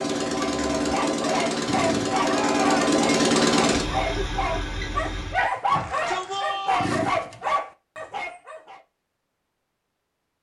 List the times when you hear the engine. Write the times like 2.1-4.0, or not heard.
0.0-5.5.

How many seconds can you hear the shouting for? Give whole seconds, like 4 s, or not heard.
2 s.